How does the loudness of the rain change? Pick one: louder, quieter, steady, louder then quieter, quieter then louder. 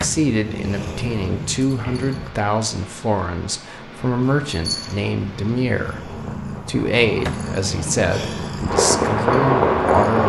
louder.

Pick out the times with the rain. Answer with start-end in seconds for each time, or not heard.
0.0-10.2.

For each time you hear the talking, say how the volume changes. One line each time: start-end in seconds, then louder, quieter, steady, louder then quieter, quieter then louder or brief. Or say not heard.
0.0-10.2 steady.